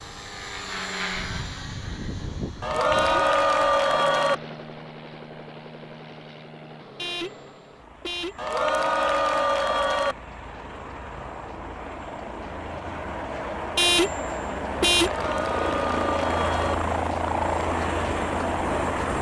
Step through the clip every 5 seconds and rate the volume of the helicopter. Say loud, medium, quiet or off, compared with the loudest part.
medium, quiet, medium, loud.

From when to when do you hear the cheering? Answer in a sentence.
You can hear the cheering from 2.6 to 4.3 s, from 8.3 to 10.2 s and from 15.0 to 16.8 s.